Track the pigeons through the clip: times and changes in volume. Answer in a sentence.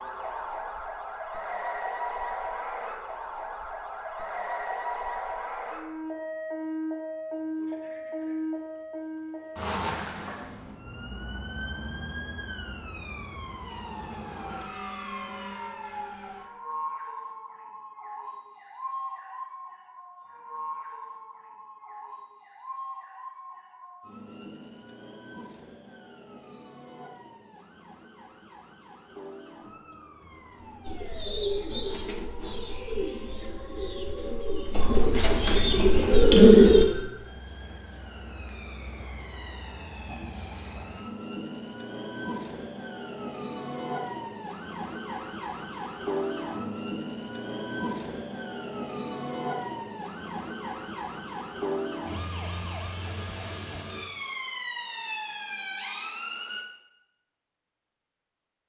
The pigeons can be heard from 30.9 to 36.9 s, getting quieter then louder.